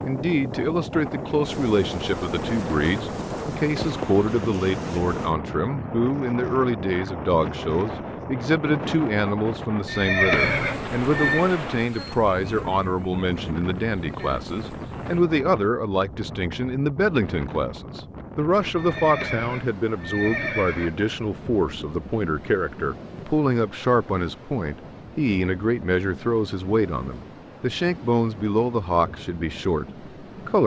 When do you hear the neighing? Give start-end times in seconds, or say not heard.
9.8-11.5, 18.8-21.0.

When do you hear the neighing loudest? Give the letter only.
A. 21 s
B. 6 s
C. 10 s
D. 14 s
C.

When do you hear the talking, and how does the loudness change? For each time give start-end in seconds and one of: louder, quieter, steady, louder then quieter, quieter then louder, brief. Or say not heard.
0.0-30.6 steady.